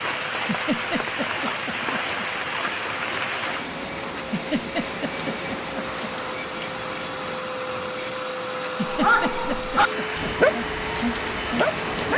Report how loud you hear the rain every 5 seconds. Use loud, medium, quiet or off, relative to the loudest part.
loud, medium, loud.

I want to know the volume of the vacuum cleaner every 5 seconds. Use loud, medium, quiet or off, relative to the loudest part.
medium, loud, loud.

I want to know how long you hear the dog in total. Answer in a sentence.
You can hear the dog for 3 seconds altogether.